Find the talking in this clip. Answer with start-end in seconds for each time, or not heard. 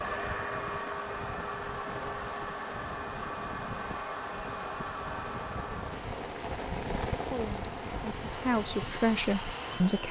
7.2-10.0.